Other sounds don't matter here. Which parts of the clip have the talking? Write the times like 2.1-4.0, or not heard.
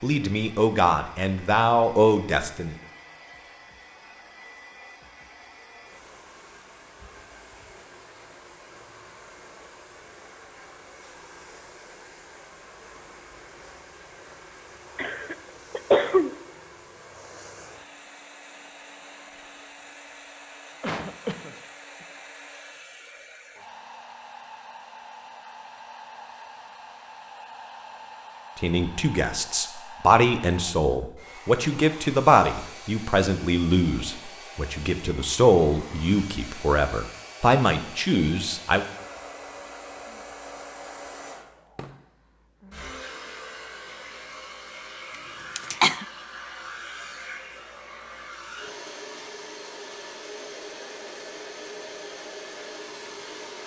0.0-2.8, 28.6-38.9.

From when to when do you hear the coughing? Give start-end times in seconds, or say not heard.
14.9-16.3, 20.8-21.6, 45.5-46.0.